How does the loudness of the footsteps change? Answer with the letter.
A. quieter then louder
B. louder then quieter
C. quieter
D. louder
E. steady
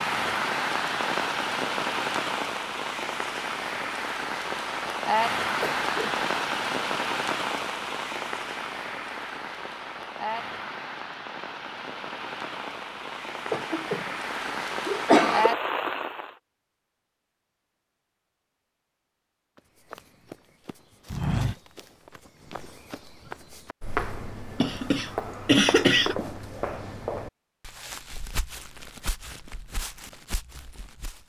C.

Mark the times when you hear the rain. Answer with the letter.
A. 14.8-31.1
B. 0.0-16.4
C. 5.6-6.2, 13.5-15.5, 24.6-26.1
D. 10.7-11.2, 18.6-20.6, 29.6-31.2
B.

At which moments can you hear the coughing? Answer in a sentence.
You can hear the coughing from 5.6 to 6.2 s, from 13.5 to 15.5 s and from 24.6 to 26.1 s.